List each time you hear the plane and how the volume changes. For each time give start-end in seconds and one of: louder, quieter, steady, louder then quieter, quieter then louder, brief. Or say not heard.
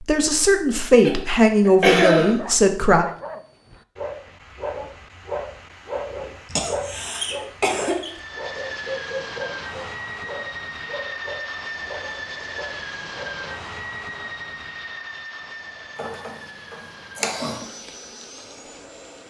8.0-19.2 quieter.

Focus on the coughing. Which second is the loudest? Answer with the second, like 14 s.
2 s.